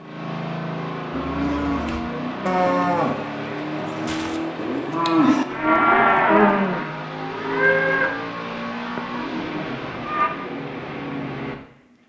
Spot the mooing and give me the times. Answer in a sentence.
The mooing can be heard from 1.1 to 10.3 s.